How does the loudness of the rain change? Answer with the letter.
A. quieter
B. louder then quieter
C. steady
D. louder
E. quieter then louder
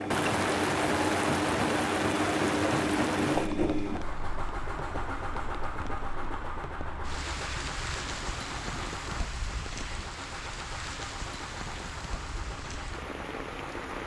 A.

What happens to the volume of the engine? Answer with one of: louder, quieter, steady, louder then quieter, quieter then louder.
quieter.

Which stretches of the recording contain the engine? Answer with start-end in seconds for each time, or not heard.
0.0-14.0.